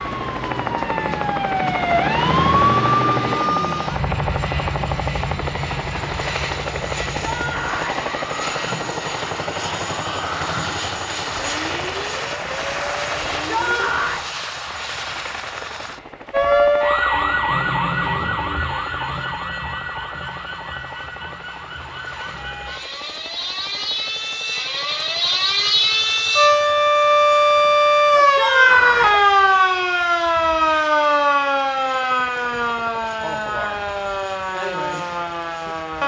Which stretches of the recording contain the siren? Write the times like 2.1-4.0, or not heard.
0.0-13.8, 16.3-36.0.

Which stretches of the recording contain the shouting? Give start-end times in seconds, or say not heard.
7.2-8.1, 13.3-14.2, 28.1-29.2.